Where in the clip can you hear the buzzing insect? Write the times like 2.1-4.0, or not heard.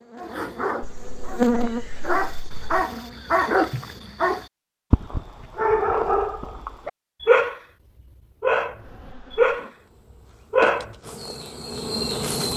0.0-4.1, 8.8-12.5.